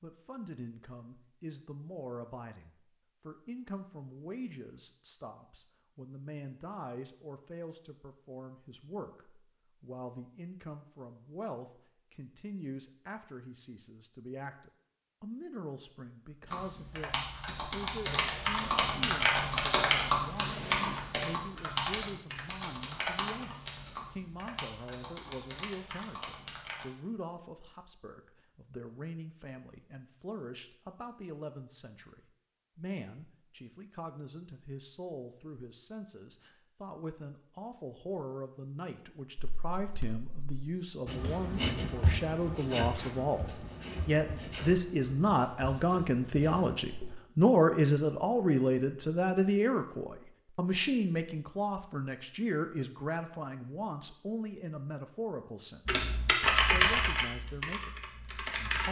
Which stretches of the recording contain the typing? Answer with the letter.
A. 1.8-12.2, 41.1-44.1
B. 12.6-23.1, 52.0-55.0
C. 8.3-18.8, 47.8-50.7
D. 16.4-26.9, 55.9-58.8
D.